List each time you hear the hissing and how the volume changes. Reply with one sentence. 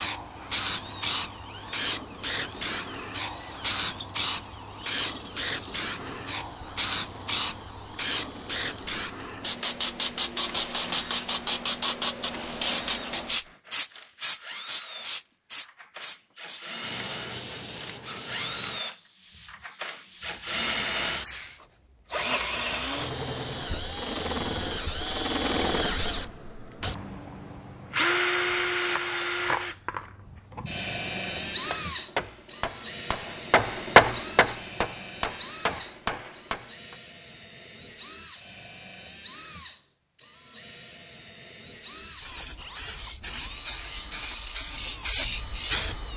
The hissing can be heard from 0.0 to 21.6 s, getting quieter; and from 42.0 to 46.1 s, getting louder.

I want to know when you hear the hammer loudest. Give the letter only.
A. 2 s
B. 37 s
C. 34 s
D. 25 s
C.